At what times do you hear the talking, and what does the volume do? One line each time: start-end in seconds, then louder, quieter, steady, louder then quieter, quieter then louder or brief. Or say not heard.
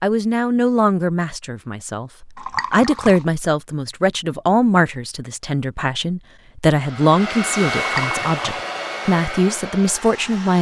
0.0-10.5 steady.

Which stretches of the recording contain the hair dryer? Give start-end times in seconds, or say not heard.
6.7-10.5.